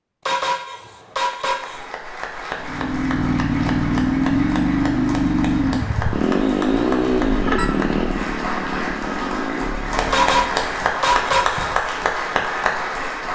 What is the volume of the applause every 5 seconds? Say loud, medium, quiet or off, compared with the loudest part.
medium, medium, loud.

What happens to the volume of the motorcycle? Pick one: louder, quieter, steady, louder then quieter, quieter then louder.
quieter.